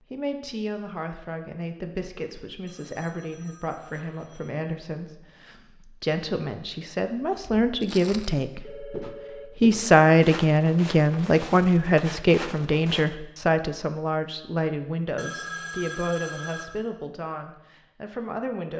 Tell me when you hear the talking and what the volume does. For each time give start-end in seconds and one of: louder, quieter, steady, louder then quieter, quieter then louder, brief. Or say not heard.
0.1-18.7 louder then quieter.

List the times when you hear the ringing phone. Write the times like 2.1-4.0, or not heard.
2.6-4.7, 8.6-9.6, 15.2-16.6.